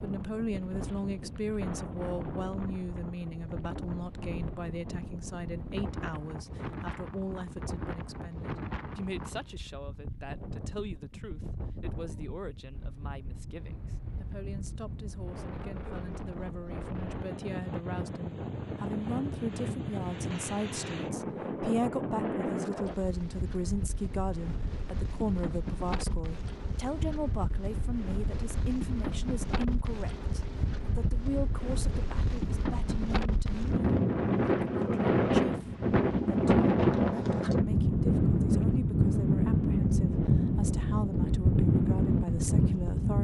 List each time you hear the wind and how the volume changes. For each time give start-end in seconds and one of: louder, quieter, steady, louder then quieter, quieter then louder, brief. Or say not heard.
0.0-43.2 louder.